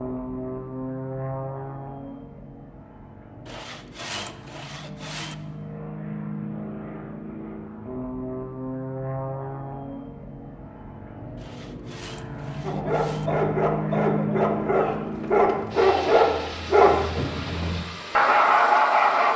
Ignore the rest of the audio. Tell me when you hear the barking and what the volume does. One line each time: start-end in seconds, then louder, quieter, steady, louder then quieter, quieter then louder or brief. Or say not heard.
12.6-19.3 louder.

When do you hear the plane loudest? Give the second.
14 s.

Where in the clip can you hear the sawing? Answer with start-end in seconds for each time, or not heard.
3.5-5.3, 11.3-13.3.